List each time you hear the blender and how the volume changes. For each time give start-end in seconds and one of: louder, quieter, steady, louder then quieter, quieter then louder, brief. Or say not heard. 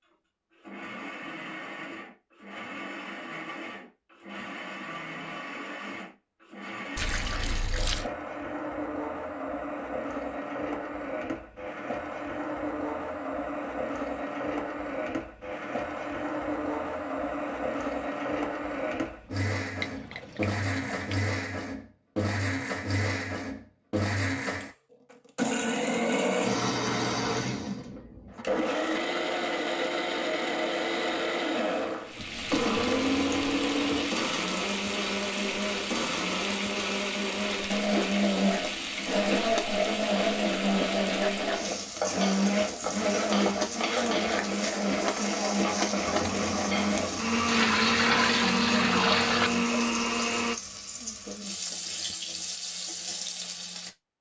0.0-50.5 louder.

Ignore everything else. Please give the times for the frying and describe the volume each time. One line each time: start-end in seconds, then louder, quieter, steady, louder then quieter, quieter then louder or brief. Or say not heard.
32.0-53.9 steady.